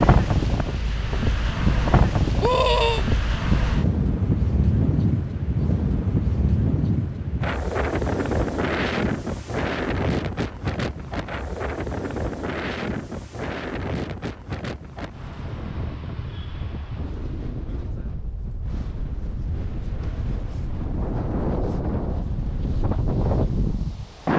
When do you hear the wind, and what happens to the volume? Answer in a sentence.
The wind can be heard from 0.0 to 24.3 s, getting quieter then louder.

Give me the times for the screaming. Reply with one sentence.
You can hear the screaming from 2.4 to 3.0 s.